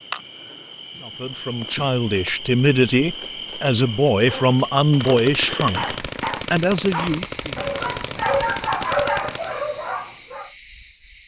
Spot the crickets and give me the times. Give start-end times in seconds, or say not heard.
0.0-11.2.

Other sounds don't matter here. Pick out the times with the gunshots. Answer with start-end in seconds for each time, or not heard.
4.9-9.5.